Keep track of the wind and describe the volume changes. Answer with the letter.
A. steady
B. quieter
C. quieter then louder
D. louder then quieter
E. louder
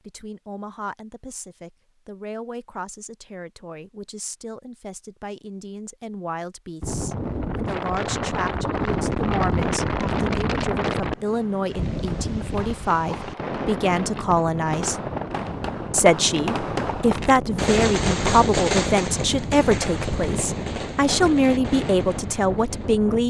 B.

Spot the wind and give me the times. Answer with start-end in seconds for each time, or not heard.
6.8-23.2.